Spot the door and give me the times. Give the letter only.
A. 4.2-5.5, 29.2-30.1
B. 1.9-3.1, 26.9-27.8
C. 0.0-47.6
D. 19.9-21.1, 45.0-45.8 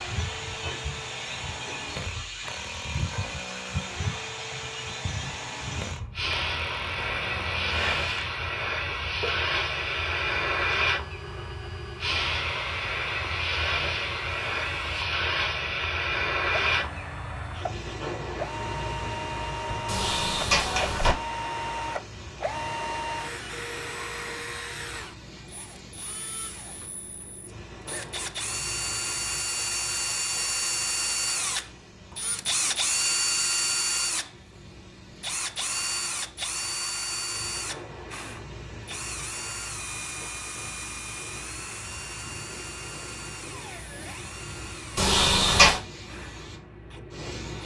D.